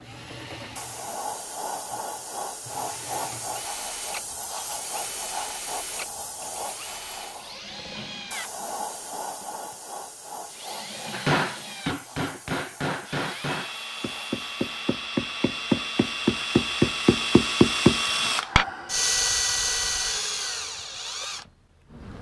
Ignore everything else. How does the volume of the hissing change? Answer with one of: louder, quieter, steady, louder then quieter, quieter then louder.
quieter.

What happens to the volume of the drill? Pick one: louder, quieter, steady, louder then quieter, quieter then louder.
louder.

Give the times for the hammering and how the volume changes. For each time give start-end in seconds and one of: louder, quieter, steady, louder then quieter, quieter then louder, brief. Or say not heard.
11.1-18.6 louder.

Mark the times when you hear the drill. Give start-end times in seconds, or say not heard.
0.0-22.1.